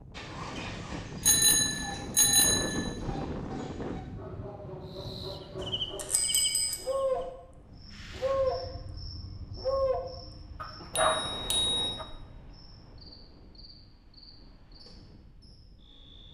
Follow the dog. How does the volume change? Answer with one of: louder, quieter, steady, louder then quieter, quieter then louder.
louder.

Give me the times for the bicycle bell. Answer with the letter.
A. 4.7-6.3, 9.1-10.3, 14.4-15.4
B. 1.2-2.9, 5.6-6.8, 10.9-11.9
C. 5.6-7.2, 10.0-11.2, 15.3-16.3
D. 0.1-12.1
B.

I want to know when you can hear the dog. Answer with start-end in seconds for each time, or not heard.
0.1-12.1.